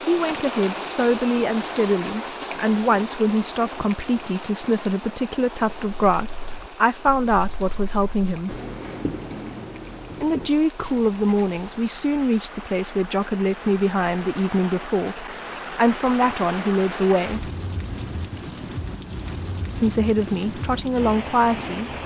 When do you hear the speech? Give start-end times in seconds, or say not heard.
0.1-8.6, 10.2-17.5, 19.8-21.9.